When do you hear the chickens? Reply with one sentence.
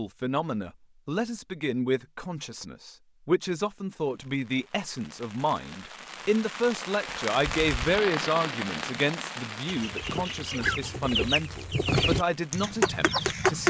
You can hear the chickens from 9.7 to 13.6 s.